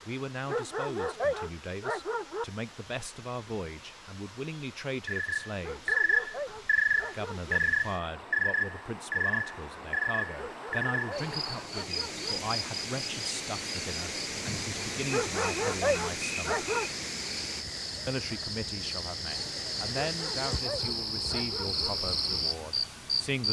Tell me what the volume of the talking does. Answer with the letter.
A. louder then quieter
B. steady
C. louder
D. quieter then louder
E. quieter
B.